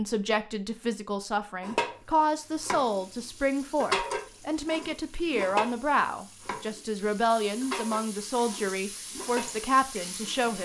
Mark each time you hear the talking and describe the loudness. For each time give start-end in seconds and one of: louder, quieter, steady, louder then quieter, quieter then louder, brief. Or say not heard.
0.0-10.6 steady.